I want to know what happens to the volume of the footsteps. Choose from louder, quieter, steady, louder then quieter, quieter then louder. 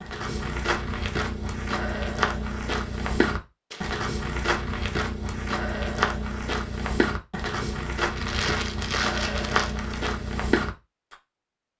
steady.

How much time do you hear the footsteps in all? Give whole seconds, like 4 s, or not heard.
11 s.